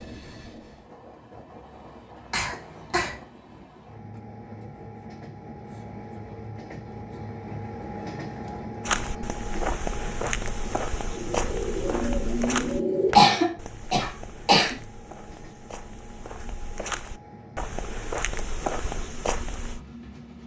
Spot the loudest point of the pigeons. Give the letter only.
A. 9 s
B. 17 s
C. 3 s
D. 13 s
D.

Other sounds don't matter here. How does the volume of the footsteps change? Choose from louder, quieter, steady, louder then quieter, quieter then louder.
quieter then louder.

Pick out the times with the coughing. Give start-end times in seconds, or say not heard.
2.3-3.2, 13.2-14.8.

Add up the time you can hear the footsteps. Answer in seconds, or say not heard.
11 s.